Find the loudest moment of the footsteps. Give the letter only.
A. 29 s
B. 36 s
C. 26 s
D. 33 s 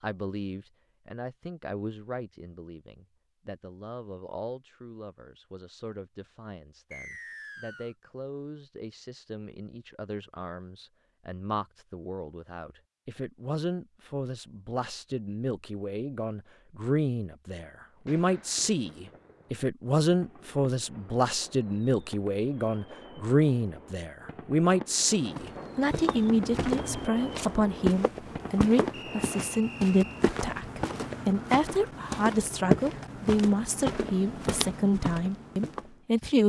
D.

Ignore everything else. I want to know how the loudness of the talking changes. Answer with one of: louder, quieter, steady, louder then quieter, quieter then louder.
louder.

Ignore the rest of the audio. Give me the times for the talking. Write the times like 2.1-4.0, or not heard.
0.0-36.4.